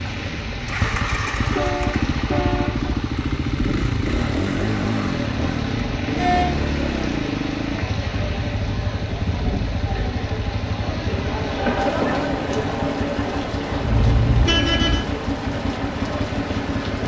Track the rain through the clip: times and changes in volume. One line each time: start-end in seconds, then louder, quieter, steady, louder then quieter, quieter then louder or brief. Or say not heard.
0.0-17.0 steady.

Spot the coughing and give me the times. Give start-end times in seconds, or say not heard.
11.7-12.2.